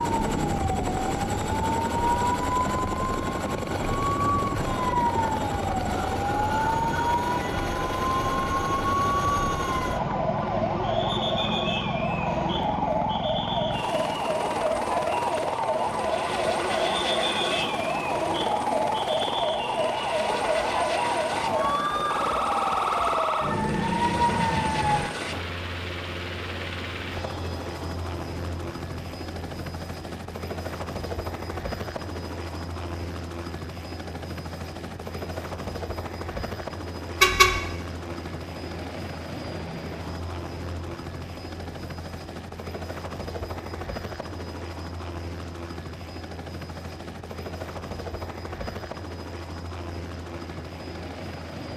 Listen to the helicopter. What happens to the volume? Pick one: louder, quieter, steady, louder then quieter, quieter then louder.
quieter.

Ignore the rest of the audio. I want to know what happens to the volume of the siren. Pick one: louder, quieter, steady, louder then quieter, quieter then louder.
steady.